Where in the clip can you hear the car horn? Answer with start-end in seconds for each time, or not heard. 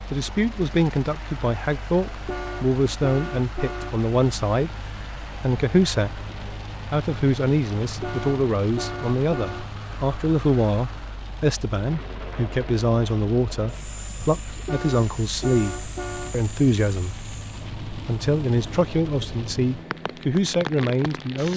2.2-4.0, 8.0-9.7, 14.7-16.4.